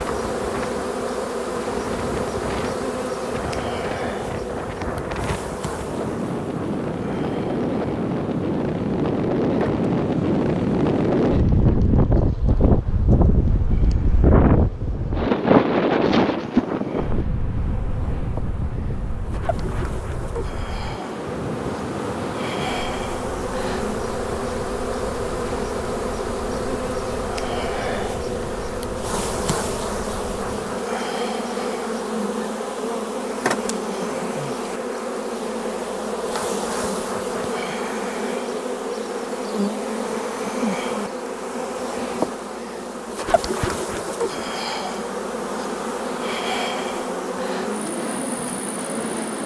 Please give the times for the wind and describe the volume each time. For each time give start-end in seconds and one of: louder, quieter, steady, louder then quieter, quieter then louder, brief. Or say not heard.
0.0-30.8 louder then quieter.